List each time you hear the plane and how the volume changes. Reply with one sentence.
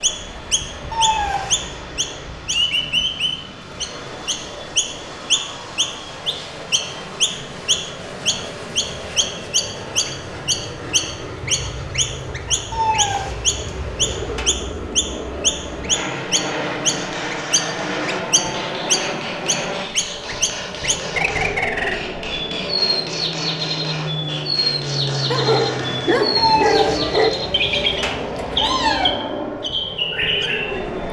You can hear the plane from 0.0 to 31.0 s, getting louder.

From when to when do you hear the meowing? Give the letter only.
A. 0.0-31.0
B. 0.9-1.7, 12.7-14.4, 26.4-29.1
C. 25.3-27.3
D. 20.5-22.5
B.